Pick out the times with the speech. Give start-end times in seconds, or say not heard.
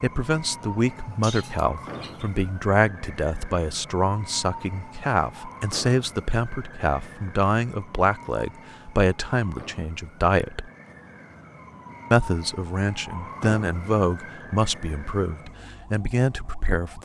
0.0-10.7, 12.1-16.9.